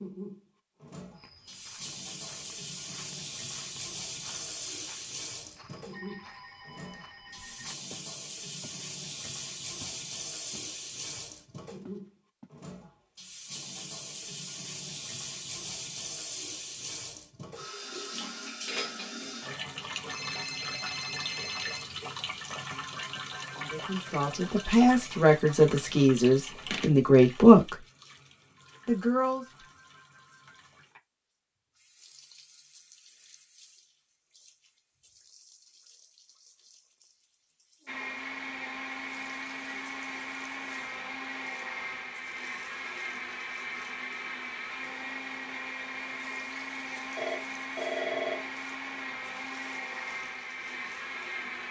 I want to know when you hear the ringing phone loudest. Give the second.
48 s.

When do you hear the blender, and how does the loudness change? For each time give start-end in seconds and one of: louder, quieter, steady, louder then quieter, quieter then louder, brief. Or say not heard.
37.9-51.6 steady.